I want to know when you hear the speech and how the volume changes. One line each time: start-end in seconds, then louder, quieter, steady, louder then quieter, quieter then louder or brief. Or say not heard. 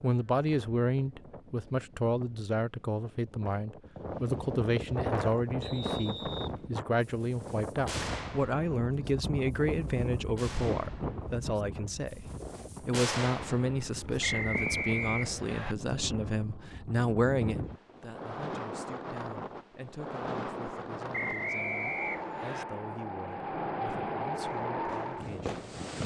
0.0-25.6 quieter.